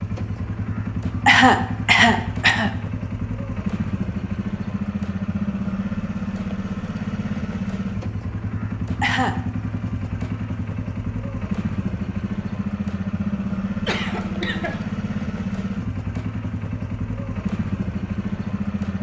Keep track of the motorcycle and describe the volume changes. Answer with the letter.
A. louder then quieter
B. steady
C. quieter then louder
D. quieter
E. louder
B.